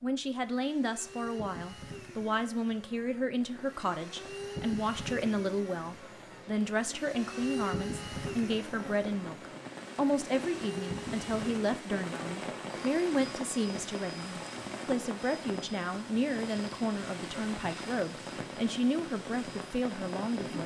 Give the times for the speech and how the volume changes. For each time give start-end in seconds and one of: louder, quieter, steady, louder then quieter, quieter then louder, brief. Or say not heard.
0.0-20.6 steady.